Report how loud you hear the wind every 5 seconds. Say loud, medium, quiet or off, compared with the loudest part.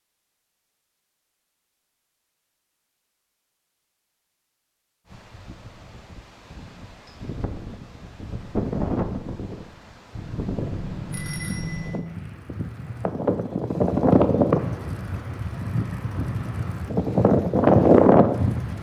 off, quiet, medium, loud.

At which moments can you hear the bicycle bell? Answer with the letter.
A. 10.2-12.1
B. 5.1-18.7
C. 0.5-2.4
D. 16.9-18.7
A.